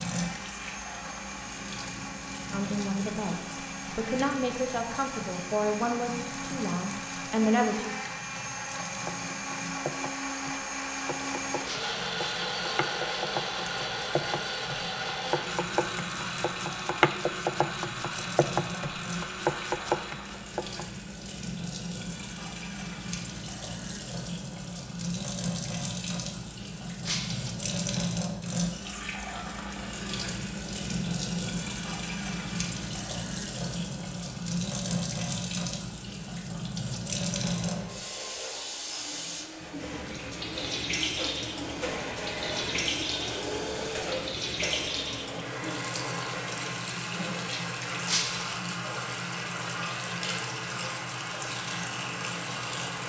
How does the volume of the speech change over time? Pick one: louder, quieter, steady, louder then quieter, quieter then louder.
louder.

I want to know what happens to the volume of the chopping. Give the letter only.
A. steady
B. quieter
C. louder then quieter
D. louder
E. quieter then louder
D.